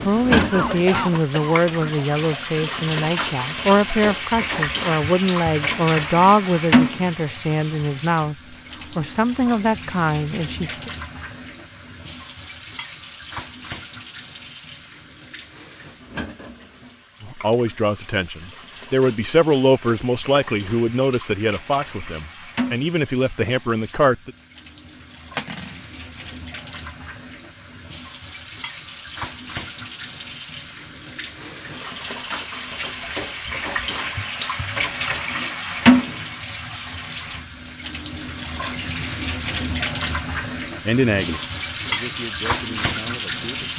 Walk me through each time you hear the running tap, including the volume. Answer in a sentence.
You can hear the running tap from 0.0 to 43.7 s, getting quieter then louder.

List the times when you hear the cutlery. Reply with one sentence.
You can hear the cutlery from 0.3 to 1.2 s and from 25.4 to 25.8 s.